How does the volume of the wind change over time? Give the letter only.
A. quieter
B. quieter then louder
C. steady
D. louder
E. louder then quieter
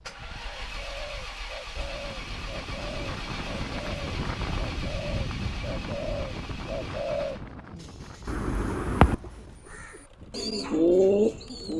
E.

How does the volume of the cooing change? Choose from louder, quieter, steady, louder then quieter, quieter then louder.
louder.